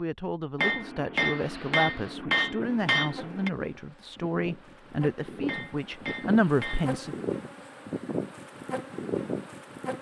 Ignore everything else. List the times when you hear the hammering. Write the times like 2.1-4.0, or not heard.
0.6-3.5, 5.5-7.0.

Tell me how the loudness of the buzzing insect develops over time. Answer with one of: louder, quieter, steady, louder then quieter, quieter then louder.
louder.